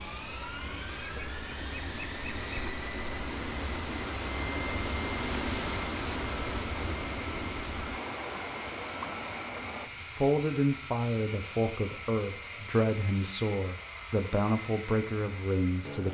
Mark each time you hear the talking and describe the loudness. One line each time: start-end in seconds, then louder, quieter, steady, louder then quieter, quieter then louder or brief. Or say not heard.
10.2-16.0 steady.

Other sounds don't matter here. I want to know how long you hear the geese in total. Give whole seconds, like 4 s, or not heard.
2 s.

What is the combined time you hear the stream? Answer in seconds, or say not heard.
10 s.